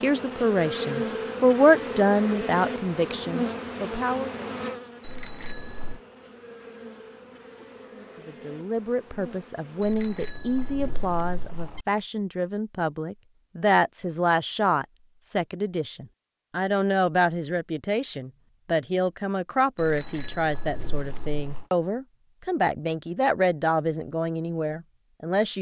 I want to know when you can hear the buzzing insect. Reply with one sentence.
The buzzing insect can be heard from 0.0 to 9.8 s.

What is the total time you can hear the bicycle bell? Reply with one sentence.
The bicycle bell can be heard for 5 seconds in total.